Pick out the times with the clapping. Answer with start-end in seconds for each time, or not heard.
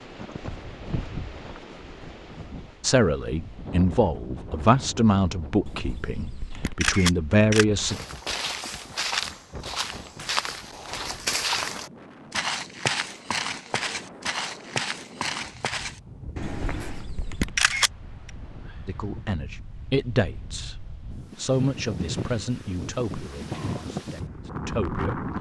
not heard.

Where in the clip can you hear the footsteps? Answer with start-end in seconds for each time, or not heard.
7.8-17.1.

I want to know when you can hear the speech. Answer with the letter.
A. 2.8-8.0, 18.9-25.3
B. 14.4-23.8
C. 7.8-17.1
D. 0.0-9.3
A.